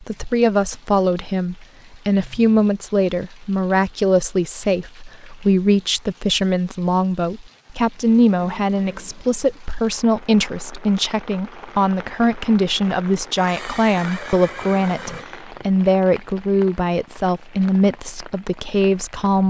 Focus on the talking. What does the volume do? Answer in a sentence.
The volume of the talking stays about the same.